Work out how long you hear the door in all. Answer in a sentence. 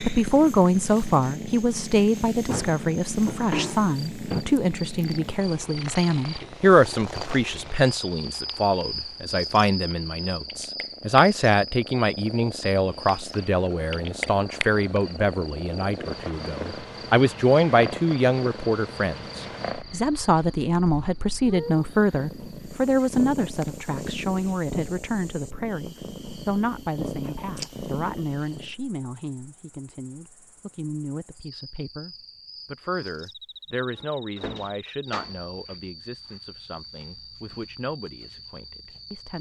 The door can be heard for 3 seconds in total.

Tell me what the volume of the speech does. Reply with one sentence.
The loudness of the speech goes down.